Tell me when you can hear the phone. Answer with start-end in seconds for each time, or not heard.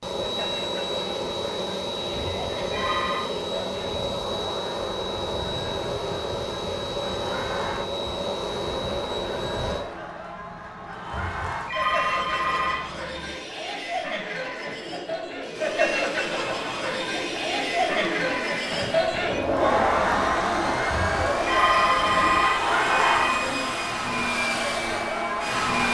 2.1-3.3, 11.1-12.9, 20.9-23.4.